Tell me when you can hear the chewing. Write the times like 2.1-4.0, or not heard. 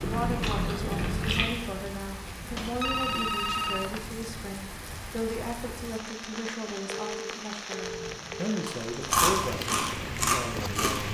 0.0-1.8, 7.8-11.1.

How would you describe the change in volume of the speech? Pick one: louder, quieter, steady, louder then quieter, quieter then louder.
steady.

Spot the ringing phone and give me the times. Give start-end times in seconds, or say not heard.
2.5-4.0, 6.8-8.8.